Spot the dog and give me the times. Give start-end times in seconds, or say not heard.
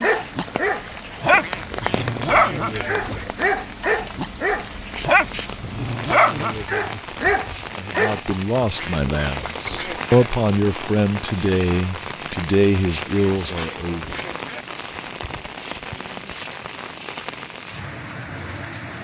0.0-8.3.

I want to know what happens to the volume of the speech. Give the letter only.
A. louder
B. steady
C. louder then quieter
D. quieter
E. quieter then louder
B.